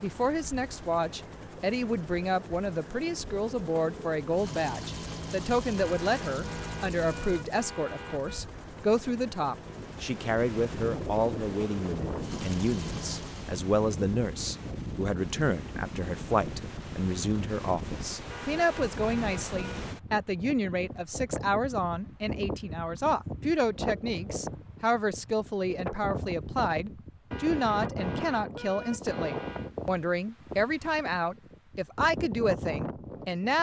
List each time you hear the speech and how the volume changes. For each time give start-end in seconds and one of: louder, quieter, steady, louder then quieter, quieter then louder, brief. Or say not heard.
0.0-33.5 steady.